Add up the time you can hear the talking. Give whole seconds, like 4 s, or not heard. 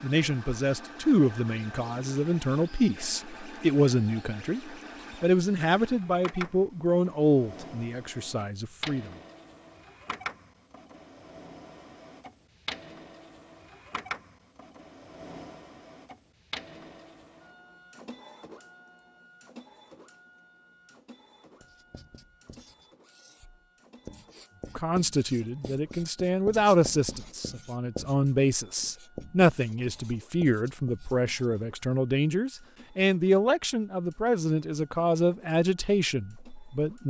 21 s.